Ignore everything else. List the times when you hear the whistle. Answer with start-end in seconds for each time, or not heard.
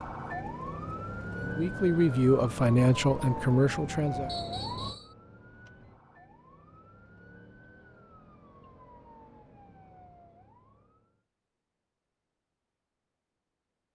4.2-5.1.